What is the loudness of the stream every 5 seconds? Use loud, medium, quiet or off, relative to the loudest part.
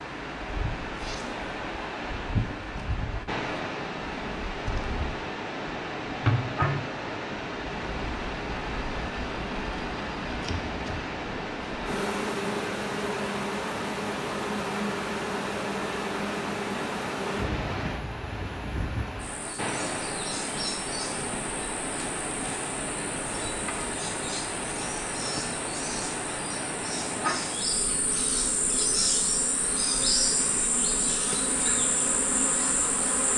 loud, loud, loud, loud, loud, loud, medium.